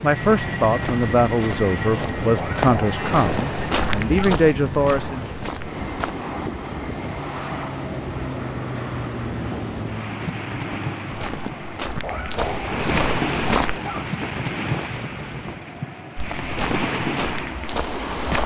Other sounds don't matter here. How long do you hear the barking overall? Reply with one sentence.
The barking can be heard for 4 seconds in total.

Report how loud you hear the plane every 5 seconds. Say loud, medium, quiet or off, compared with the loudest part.
loud, loud, medium, medium.